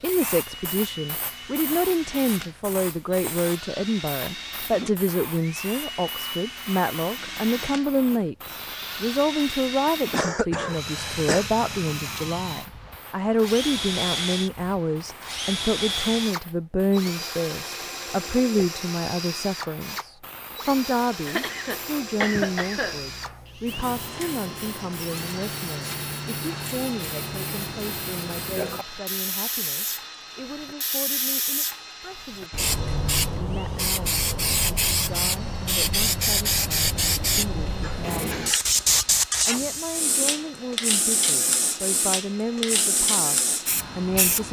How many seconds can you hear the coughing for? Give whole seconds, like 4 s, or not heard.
4 s.